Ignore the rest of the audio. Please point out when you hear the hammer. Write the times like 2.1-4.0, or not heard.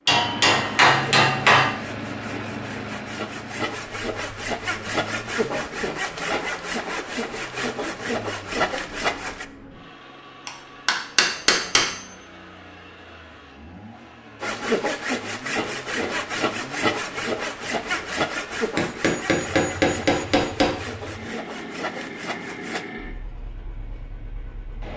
0.1-1.7, 10.4-12.0, 18.8-20.8.